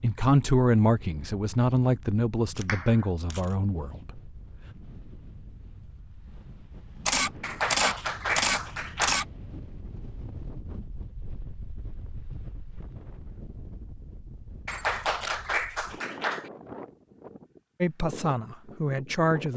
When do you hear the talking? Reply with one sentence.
You can hear the talking from 0.0 to 4.2 s and from 17.8 to 19.5 s.